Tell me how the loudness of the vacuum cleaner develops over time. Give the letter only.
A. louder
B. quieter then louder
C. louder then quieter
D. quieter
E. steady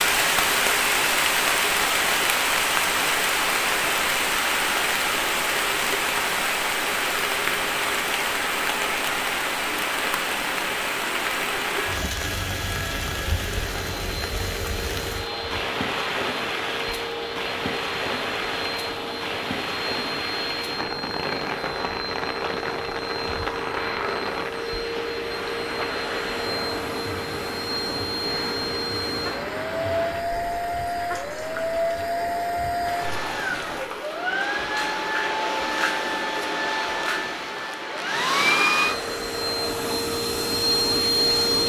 A.